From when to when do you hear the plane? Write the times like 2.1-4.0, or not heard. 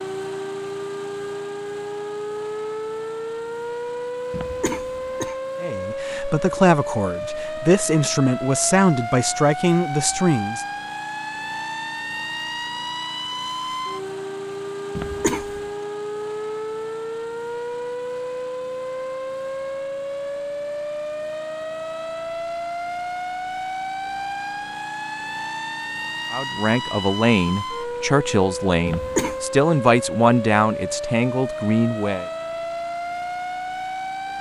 not heard.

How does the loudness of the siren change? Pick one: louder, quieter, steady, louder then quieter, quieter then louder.
steady.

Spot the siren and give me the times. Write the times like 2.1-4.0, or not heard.
0.0-34.3.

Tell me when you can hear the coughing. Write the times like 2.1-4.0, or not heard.
4.3-5.3, 14.9-15.6, 28.9-29.4.